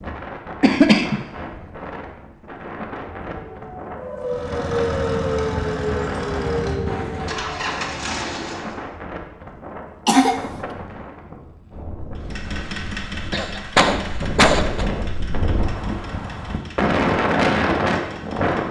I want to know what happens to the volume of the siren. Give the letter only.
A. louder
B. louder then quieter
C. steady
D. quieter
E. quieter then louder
B.